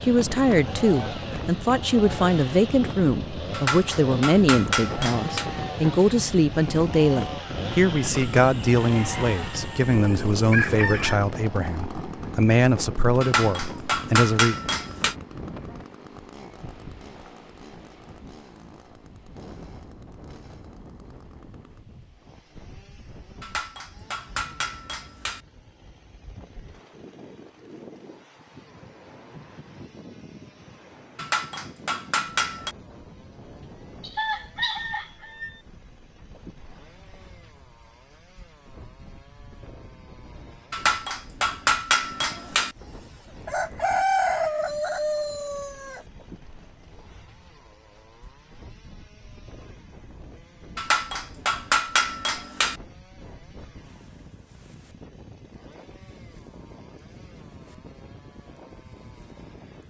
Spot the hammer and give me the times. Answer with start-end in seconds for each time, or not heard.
3.5-5.5, 13.2-15.2, 23.4-25.4, 31.1-32.8, 40.7-42.8, 50.8-52.8.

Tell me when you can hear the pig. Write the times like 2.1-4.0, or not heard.
not heard.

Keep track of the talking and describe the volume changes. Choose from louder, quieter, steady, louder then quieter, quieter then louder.
steady.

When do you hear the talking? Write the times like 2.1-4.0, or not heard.
0.0-14.6.